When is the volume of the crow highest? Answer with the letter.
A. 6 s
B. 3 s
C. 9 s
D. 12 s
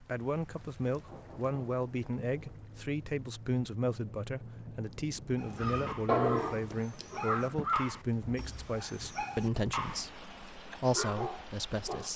A.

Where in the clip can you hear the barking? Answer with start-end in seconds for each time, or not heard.
5.3-10.1, 10.7-12.1.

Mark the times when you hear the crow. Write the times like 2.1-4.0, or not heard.
5.5-8.8.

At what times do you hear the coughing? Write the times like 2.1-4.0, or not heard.
not heard.